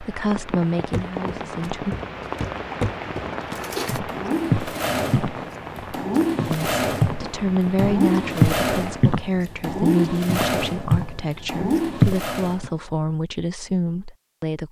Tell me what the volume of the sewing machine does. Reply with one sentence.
The loudness of the sewing machine stays about the same.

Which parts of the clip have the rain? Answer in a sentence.
The rain can be heard from 0.0 to 9.2 s.